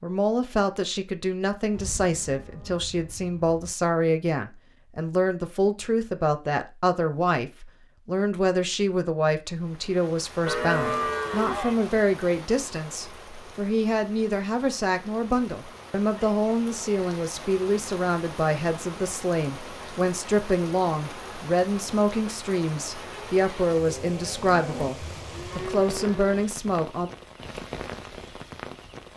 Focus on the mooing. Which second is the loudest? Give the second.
11 s.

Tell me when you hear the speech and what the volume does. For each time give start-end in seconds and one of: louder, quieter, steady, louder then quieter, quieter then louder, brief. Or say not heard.
0.0-27.1 steady.